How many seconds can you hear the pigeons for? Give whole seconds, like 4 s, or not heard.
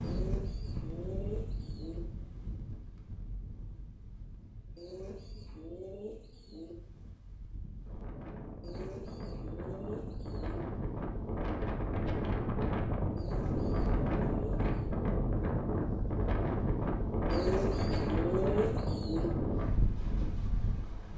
10 s.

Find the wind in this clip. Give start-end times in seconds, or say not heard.
0.0-21.1.